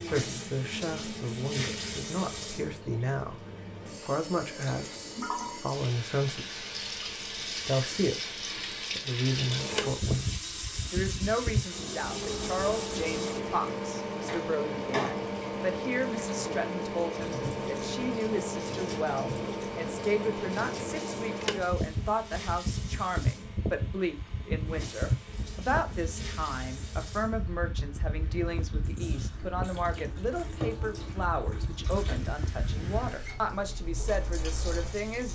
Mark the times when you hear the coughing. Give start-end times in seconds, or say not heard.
not heard.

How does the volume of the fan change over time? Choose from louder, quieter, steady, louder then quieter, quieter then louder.
louder then quieter.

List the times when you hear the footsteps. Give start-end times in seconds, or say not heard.
not heard.